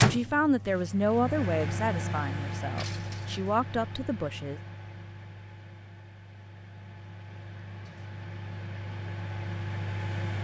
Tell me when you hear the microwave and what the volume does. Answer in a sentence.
You can hear the microwave from 0.0 to 10.3 s, getting quieter then louder.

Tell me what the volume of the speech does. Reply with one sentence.
The loudness of the speech goes down, then up.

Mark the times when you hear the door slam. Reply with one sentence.
You can't hear the door slam here.